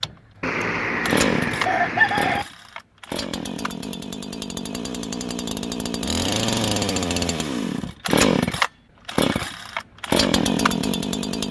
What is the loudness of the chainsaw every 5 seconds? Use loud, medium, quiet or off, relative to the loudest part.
medium, loud, loud.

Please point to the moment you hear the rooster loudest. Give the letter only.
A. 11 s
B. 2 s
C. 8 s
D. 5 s
B.